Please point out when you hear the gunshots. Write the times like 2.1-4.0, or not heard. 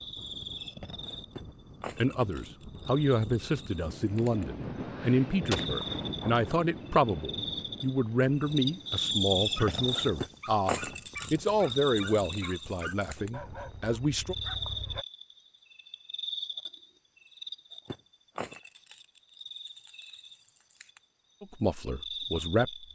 5.5-6.5.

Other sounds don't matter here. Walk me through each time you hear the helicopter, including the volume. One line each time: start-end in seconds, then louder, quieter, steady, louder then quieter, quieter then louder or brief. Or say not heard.
not heard.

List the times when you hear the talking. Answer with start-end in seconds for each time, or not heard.
1.9-14.3, 21.4-22.9.